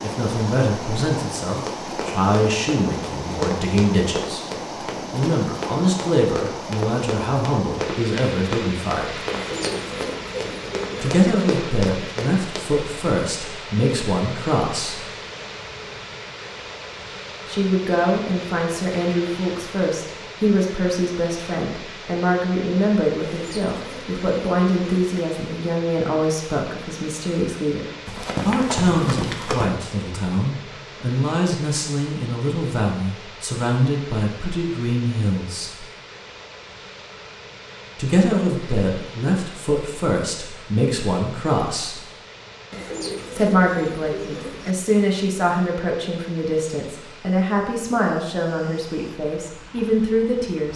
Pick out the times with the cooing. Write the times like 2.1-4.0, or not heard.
9.3-11.2, 23.2-25.1, 42.7-44.8.